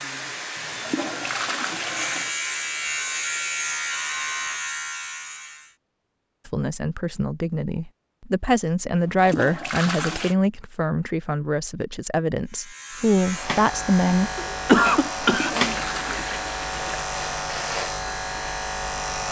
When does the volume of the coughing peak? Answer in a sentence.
The volume of the coughing peaks at 15 seconds.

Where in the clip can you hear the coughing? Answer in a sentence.
You can hear the coughing from 14.3 to 16.4 s.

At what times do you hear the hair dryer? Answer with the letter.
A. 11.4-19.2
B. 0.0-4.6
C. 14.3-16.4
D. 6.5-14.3
B.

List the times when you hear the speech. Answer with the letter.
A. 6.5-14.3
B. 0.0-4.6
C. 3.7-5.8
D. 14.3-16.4
A.